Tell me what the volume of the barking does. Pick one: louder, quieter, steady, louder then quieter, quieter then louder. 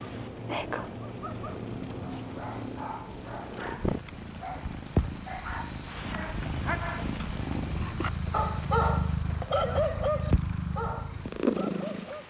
louder then quieter.